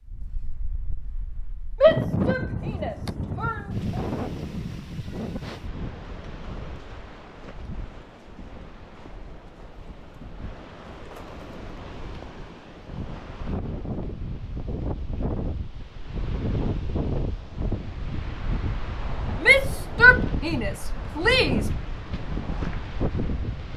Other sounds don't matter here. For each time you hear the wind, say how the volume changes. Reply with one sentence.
The wind can be heard from 0.0 to 23.7 s, getting quieter then louder.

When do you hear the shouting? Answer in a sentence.
You can hear the shouting from 1.8 to 4.0 s and from 19.4 to 21.7 s.